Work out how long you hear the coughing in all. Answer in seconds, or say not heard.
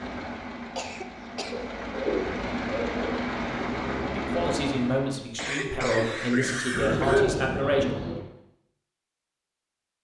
3 s.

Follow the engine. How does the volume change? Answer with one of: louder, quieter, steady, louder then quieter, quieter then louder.
louder.